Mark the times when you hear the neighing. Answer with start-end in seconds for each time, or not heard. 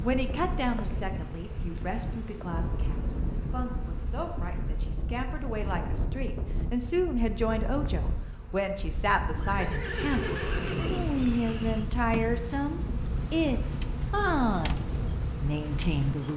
9.3-11.4.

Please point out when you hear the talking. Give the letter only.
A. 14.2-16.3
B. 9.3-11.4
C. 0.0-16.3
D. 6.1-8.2
C.